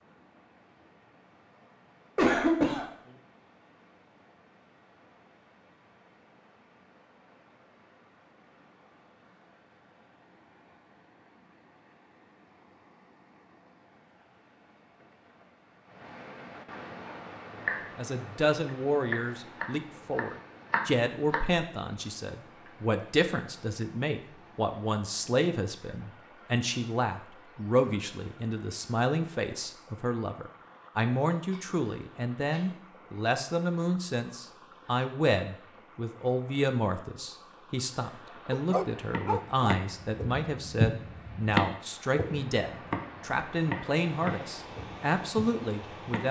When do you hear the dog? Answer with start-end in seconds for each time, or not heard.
38.5-39.8.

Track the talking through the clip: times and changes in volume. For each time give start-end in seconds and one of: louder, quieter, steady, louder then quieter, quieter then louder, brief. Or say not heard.
17.6-46.2 steady.